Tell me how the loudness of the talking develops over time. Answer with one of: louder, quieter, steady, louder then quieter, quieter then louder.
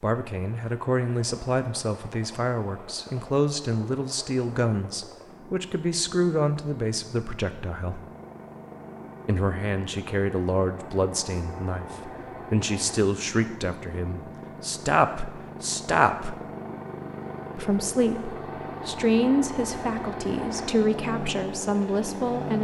steady.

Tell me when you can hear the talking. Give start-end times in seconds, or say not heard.
0.0-8.0, 9.2-16.4, 17.6-22.5.